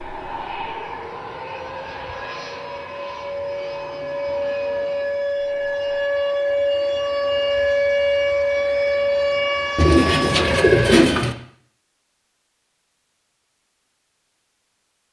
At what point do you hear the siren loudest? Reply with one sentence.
The volume of the siren peaks at 8 seconds.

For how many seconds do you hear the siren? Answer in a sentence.
The siren can be heard for 11 seconds in total.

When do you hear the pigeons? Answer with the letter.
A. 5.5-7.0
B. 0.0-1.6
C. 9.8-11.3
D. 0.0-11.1
C.